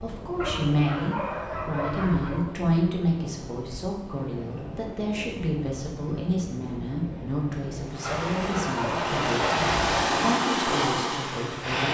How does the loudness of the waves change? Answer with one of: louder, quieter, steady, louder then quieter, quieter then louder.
louder.